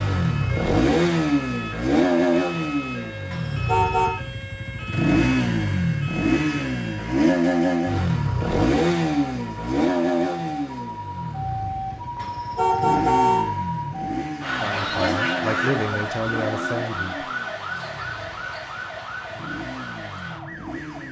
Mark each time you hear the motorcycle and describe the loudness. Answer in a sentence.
The motorcycle can be heard from 0.0 to 21.0 s, getting quieter.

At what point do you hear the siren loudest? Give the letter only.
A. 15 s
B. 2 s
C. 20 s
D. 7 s
A.